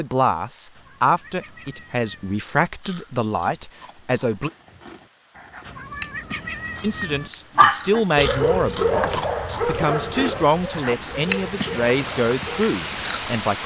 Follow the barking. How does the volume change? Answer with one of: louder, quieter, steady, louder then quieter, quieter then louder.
quieter.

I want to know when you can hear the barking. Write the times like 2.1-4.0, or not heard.
7.5-12.7.